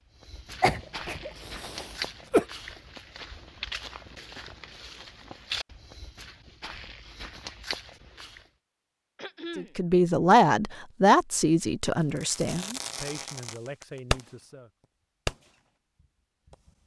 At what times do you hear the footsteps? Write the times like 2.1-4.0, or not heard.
0.1-8.5.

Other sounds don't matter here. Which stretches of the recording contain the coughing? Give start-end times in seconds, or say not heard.
0.6-2.5, 9.2-9.8.